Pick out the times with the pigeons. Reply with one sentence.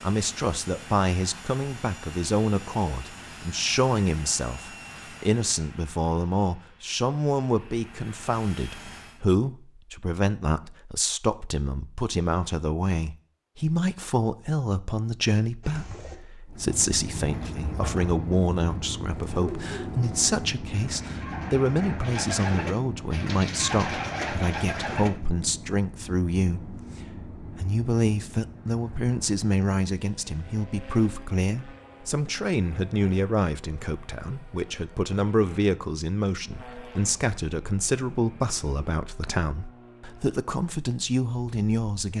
You can hear the pigeons from 15.6 to 25.1 s.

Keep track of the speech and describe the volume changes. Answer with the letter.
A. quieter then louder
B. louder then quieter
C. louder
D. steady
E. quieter
D.